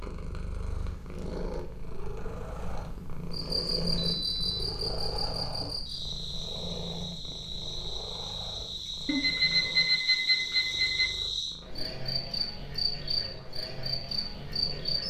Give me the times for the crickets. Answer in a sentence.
You can hear the crickets from 3.3 to 15.0 s.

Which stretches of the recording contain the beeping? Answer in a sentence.
The beeping can be heard from 4.0 to 4.8 s and from 9.1 to 11.1 s.